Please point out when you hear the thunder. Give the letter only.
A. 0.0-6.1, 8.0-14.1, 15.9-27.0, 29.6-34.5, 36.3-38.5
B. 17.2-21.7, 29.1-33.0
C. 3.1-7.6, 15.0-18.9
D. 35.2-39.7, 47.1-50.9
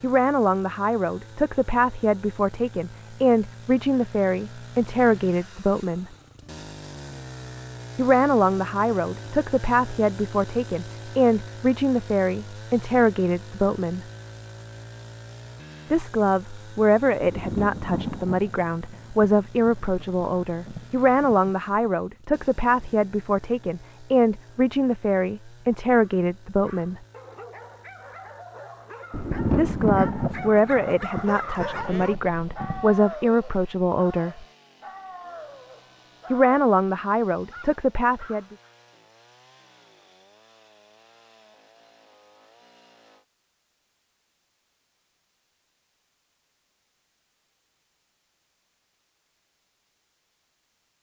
B.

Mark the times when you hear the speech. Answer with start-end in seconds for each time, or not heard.
0.0-6.1, 8.0-14.1, 15.9-27.0, 29.6-34.5, 36.3-38.5.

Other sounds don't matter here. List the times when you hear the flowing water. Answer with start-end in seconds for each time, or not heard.
not heard.